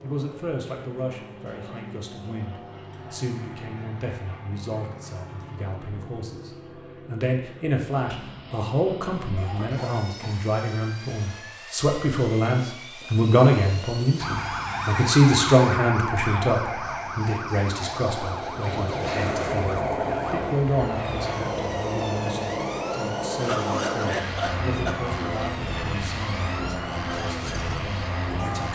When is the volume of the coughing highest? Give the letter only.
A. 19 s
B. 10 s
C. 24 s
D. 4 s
C.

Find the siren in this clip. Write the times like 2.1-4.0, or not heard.
14.2-28.7.